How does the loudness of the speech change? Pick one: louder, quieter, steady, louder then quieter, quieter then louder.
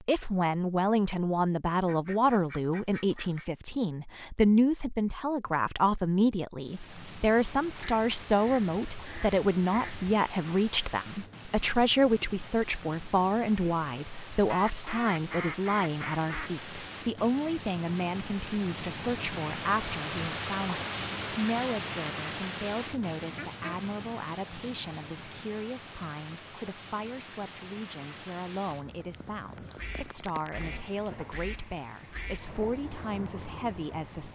quieter.